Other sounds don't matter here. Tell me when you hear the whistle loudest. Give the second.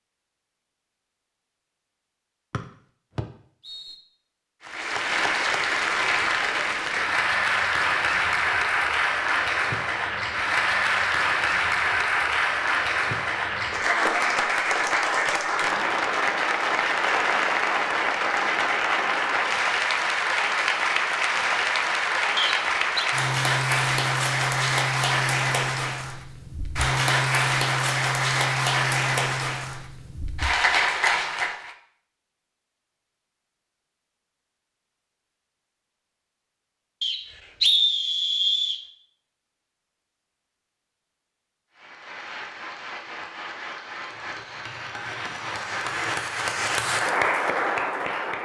38 s.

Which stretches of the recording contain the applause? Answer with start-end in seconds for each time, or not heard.
4.6-31.8, 41.8-48.4.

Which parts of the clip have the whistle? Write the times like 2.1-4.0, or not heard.
2.5-4.0, 22.4-23.1, 37.0-38.8.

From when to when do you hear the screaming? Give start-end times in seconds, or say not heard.
not heard.